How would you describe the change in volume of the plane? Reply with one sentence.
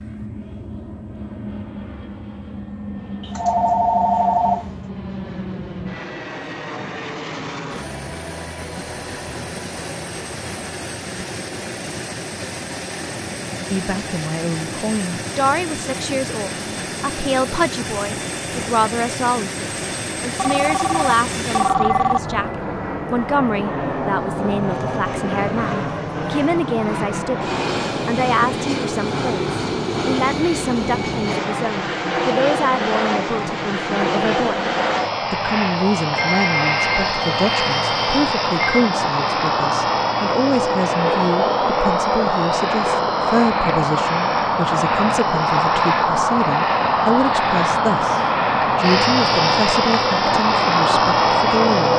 The volume of the plane goes up.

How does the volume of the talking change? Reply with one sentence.
The loudness of the talking stays about the same.